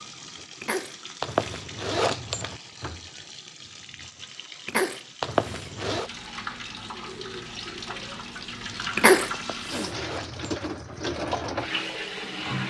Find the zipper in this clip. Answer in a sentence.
The zipper can be heard from 1.2 to 2.6 s, from 5.2 to 6.1 s and from 9.3 to 10.4 s.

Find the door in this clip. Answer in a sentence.
You can't hear the door here.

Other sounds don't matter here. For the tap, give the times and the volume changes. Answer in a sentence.
The tap can be heard from 0.0 to 12.6 s, getting louder.